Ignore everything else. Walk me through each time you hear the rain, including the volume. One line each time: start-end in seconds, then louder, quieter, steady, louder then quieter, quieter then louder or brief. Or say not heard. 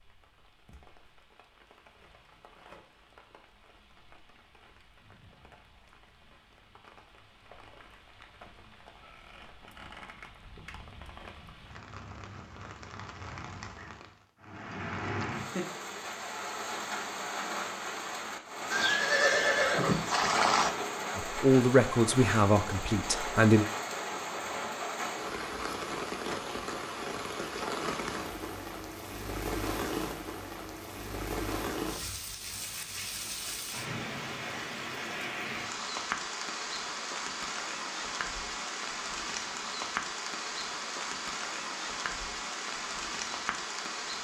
0.0-44.2 louder.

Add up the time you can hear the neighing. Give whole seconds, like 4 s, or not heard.
2 s.